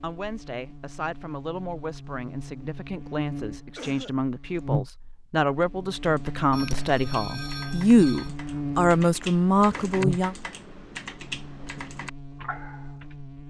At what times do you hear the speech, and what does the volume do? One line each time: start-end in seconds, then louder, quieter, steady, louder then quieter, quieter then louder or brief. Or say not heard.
0.0-10.3 louder.